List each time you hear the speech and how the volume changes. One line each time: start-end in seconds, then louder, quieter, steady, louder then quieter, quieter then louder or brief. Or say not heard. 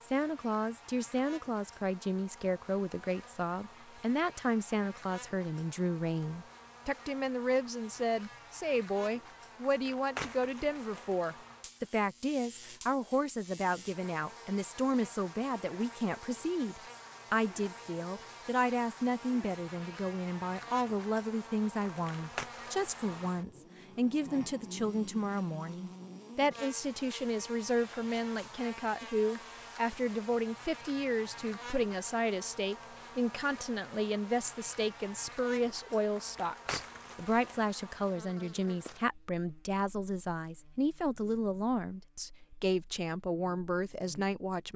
0.0-44.7 steady.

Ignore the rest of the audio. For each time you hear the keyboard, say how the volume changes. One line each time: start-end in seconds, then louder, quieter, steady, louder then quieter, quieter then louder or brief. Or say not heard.
not heard.